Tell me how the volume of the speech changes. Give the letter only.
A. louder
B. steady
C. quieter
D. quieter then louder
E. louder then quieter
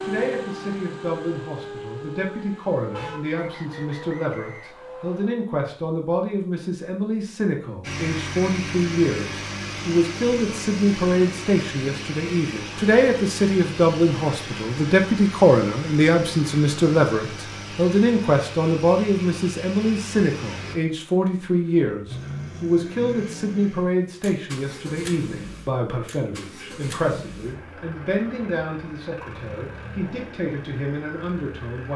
E.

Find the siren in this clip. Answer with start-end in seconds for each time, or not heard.
0.0-5.2.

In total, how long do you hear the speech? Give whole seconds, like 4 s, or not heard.
32 s.